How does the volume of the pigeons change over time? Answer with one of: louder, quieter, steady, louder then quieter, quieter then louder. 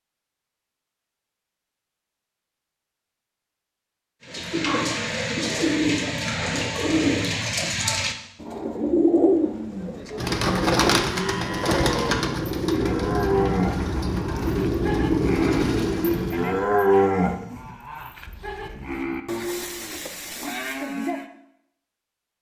steady.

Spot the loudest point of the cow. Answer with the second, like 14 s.
17 s.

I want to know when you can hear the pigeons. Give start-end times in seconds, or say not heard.
4.2-16.7.